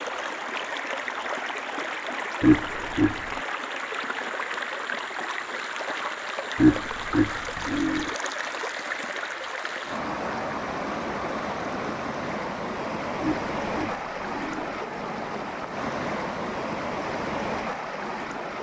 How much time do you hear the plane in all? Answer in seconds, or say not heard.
not heard.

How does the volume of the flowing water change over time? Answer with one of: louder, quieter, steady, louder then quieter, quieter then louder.
steady.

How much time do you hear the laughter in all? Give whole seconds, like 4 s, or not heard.
4 s.